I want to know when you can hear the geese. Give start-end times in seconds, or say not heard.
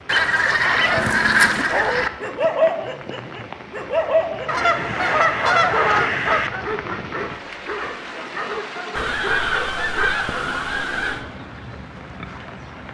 0.1-2.1, 4.5-6.5, 8.9-11.2.